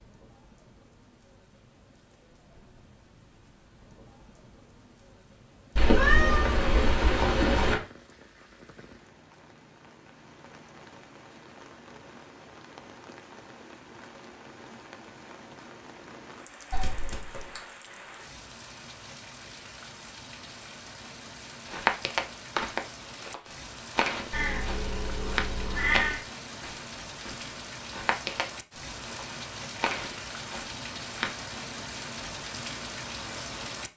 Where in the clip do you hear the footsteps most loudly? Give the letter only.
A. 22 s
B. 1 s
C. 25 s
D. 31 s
A.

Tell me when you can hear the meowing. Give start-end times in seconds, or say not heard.
5.8-7.8, 16.7-17.6, 24.3-26.2.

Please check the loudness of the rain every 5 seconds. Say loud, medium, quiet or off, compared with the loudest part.
quiet, quiet, medium, medium, medium, loud, loud.